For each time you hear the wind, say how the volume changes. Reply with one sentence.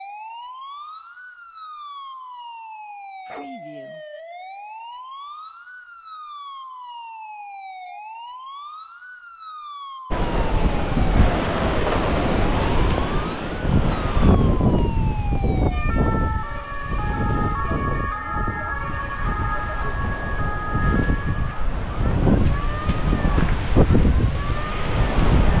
You can hear the wind from 10.1 to 25.5 s, getting quieter then louder.